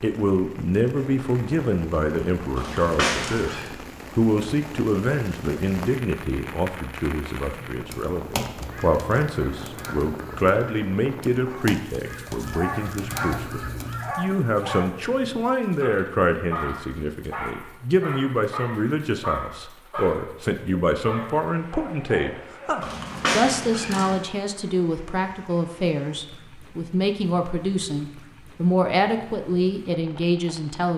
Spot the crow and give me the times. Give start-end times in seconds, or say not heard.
7.9-14.3.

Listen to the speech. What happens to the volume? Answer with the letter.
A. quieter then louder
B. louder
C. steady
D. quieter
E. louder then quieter
C.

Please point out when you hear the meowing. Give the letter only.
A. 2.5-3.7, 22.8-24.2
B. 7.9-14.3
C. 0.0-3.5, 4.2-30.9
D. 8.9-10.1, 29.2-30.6
A.